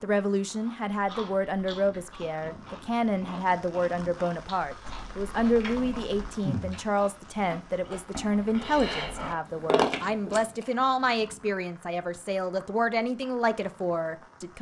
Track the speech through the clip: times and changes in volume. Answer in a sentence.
The speech can be heard from 0.0 to 14.5 s, at a steady volume.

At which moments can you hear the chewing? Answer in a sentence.
The chewing can be heard from 0.7 to 10.7 s.